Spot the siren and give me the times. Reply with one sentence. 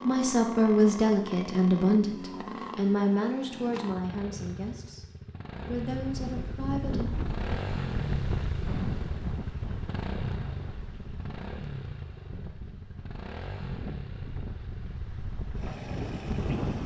The siren can't be heard in this clip.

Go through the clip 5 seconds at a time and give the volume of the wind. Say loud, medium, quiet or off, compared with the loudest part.
off, loud, medium, loud.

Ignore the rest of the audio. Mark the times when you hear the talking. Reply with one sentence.
You can hear the talking from 0.0 to 7.1 s.